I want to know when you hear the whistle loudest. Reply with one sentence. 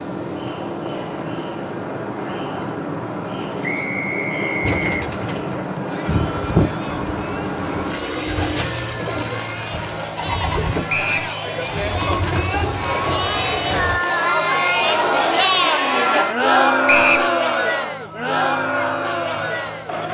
The volume of the whistle peaks at 17 seconds.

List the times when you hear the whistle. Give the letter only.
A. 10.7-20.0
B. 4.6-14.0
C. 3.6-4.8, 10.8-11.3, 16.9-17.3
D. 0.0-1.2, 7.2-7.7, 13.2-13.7
C.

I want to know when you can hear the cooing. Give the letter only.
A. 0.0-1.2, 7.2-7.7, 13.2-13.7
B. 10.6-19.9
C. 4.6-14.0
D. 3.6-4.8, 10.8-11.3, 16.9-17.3
C.